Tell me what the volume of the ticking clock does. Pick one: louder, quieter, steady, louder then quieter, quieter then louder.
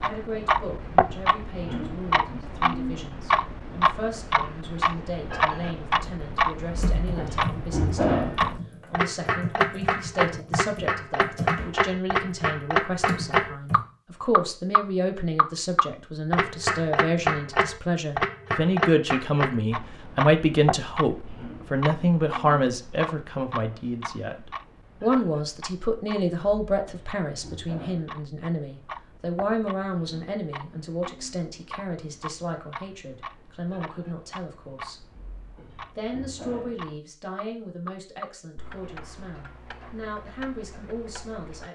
quieter.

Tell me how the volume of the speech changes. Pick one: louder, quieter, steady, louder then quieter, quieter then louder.
louder then quieter.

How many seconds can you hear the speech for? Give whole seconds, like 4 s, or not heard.
41 s.